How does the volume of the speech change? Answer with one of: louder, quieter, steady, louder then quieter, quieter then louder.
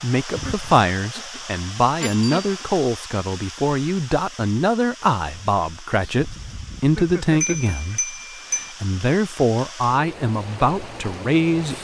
steady.